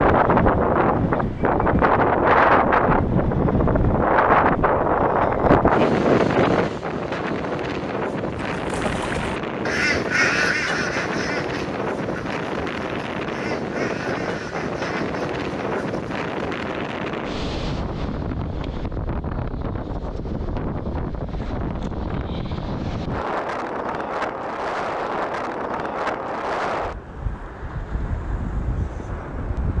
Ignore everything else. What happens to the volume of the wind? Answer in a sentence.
The volume of the wind goes down.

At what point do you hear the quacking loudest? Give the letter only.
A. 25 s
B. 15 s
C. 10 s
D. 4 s
C.